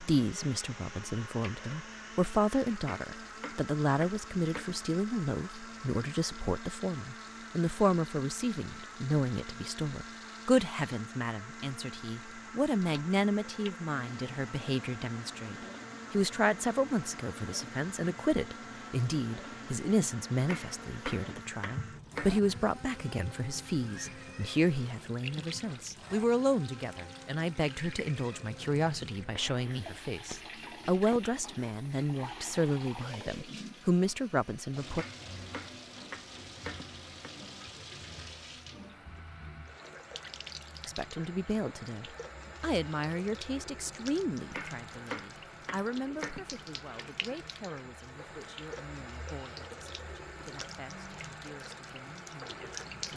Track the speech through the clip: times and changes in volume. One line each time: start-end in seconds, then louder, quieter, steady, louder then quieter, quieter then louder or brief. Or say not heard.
0.0-35.0 steady
40.9-52.9 quieter.